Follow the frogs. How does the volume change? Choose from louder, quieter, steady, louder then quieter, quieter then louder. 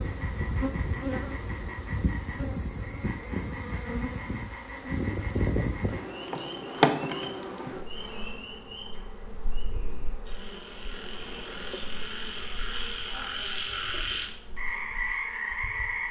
louder.